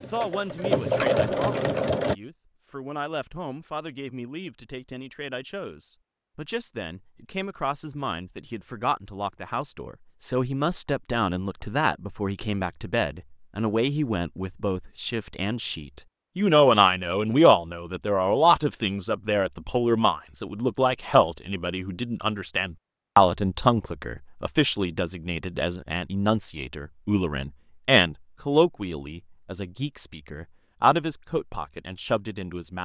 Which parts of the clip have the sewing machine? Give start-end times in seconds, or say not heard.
0.0-2.1.